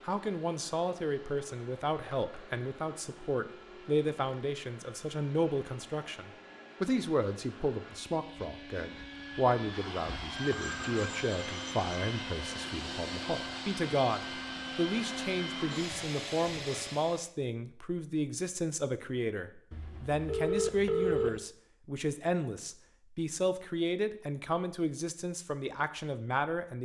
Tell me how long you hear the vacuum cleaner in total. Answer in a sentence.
You can hear the vacuum cleaner for 17 seconds altogether.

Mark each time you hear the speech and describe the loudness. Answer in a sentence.
The speech can be heard from 0.0 to 26.8 s, at a steady volume.